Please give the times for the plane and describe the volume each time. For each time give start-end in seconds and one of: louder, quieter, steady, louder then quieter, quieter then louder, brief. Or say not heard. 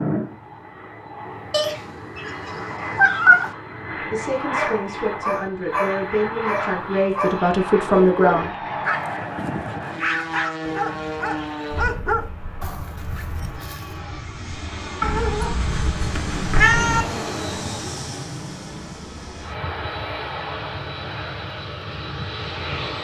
0.0-22.9 steady.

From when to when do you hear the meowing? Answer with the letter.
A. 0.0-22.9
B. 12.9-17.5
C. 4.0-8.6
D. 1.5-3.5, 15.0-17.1
D.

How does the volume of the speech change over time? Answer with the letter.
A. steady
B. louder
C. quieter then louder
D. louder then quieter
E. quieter
B.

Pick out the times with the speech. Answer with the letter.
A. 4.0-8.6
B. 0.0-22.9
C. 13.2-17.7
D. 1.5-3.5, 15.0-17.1
A.